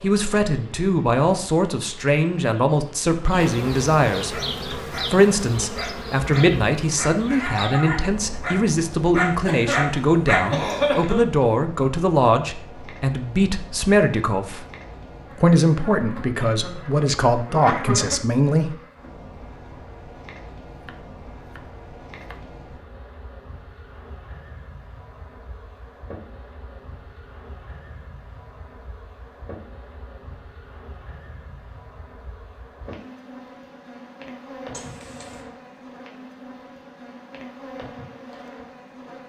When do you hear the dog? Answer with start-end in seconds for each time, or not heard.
4.2-10.9.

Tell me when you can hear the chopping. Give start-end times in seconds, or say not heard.
20.9-22.5.